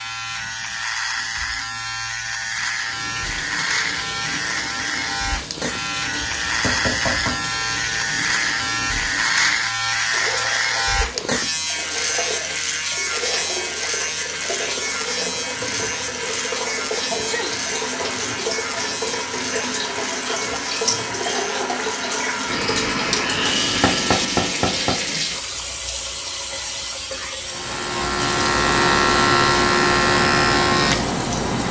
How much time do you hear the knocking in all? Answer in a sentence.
You can hear the knocking for 2 seconds altogether.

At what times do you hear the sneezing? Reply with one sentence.
You can hear the sneezing from 17.1 to 17.6 s.